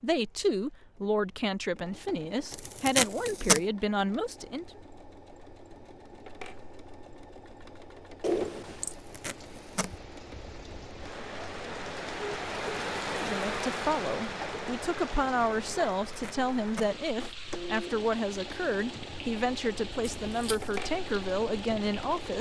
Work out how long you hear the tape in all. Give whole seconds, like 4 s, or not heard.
3 s.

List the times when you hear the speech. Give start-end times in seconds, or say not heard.
0.0-4.7, 13.1-22.3.